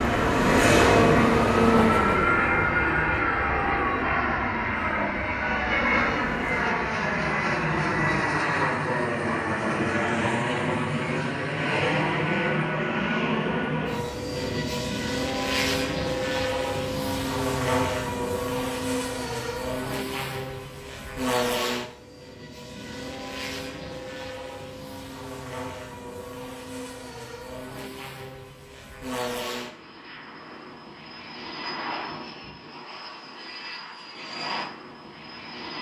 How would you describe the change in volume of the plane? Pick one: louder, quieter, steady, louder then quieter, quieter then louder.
quieter.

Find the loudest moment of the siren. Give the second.
1 s.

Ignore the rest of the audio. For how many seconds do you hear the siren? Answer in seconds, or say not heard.
7 s.